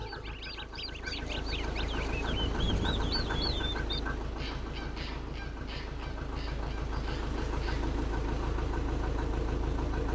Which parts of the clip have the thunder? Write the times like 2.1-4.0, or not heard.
2.2-3.6.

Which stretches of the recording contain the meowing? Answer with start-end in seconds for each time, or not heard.
not heard.